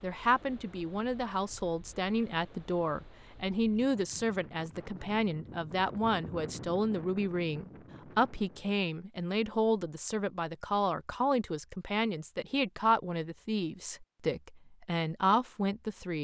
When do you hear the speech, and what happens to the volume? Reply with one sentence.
The speech can be heard from 0.0 to 16.1 s, at a steady volume.